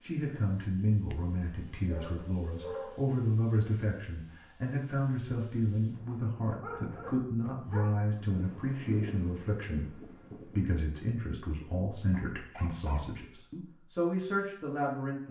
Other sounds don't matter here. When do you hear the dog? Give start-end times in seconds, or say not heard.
1.1-3.0, 6.6-8.1, 12.1-13.2.